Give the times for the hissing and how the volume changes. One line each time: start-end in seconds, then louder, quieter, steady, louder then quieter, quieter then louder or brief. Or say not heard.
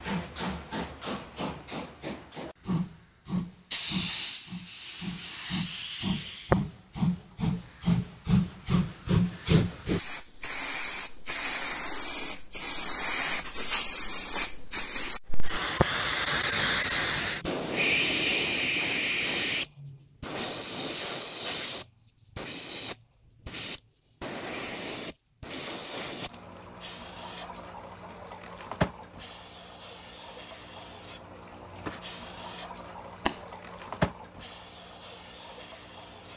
0.0-36.3 louder then quieter.